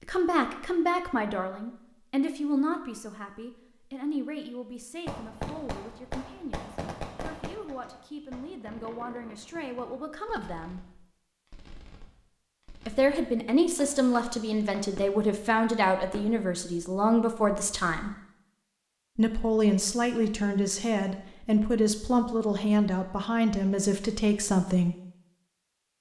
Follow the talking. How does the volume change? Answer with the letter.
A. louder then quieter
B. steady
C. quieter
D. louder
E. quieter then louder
E.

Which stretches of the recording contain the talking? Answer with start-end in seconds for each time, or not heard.
0.1-10.8, 12.8-18.1, 19.1-24.9.